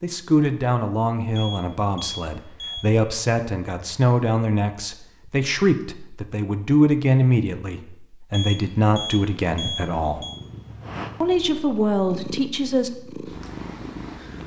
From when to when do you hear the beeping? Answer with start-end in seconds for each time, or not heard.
1.4-3.0, 8.3-10.4.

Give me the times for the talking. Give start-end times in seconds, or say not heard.
0.0-10.2, 11.2-12.9.